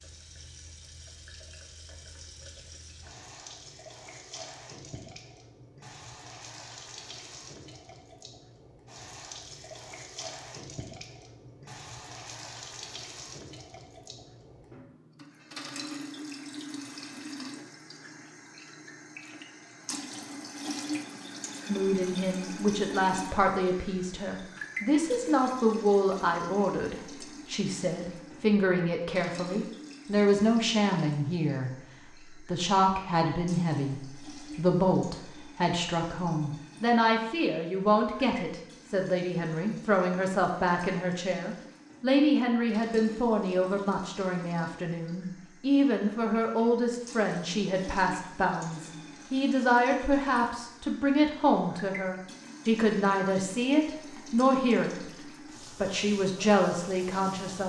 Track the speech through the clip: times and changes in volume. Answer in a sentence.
You can hear the speech from 21.6 to 31.7 s, at a steady volume; and from 32.3 to 57.6 s, at a steady volume.